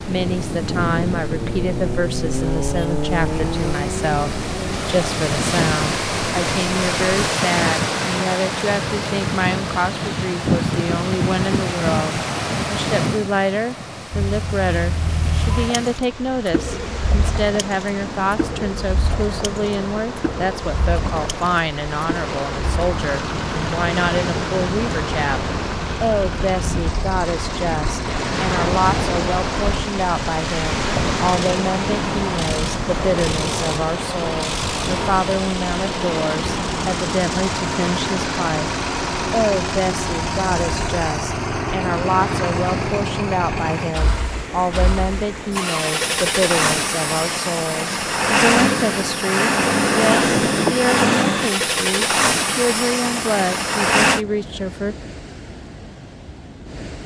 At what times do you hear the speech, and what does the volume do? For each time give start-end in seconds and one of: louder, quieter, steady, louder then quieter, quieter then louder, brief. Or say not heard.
0.0-55.0 steady.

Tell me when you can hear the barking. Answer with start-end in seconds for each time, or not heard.
not heard.